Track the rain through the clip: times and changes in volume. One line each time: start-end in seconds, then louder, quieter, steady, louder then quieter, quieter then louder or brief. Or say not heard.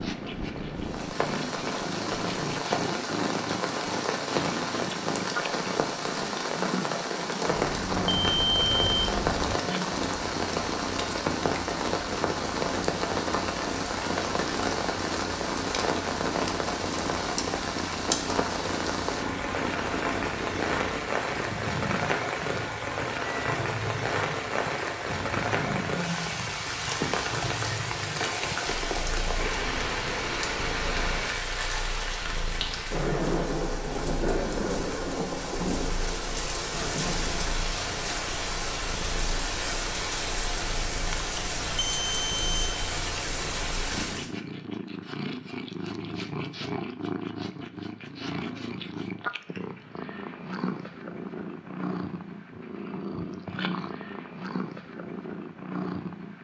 0.0-44.3 steady.